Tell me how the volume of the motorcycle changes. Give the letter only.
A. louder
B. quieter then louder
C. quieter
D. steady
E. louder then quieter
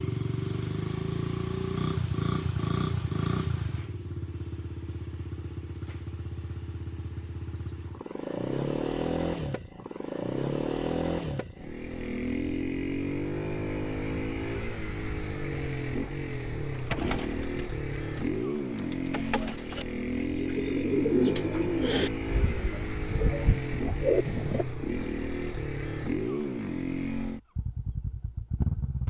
D.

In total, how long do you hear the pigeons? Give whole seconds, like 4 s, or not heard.
8 s.